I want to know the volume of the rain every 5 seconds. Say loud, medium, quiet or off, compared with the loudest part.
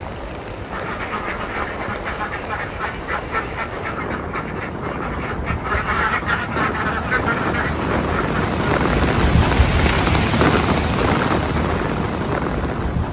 medium, loud, loud.